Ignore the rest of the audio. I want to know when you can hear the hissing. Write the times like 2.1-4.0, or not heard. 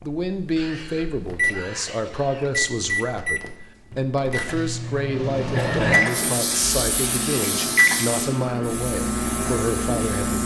6.0-10.4.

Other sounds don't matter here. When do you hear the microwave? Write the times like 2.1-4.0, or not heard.
0.0-10.4.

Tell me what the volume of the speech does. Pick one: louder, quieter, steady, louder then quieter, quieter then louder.
steady.